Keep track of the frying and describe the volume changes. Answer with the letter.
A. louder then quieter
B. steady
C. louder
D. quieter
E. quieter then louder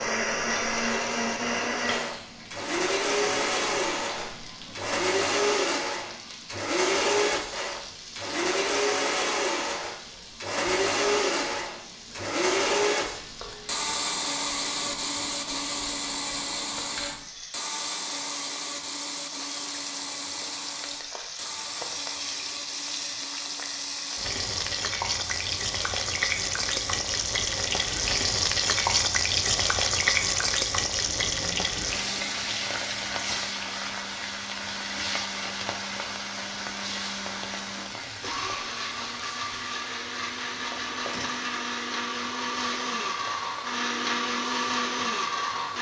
A.